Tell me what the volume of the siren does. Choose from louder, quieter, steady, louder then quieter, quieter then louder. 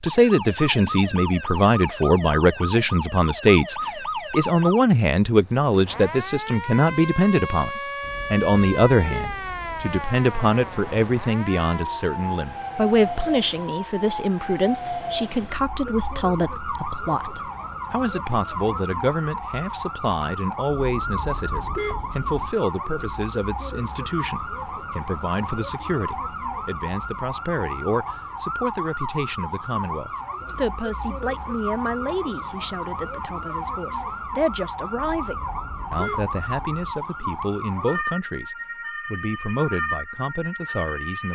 steady.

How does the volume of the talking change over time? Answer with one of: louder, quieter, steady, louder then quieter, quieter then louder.
quieter.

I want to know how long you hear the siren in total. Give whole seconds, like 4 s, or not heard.
41 s.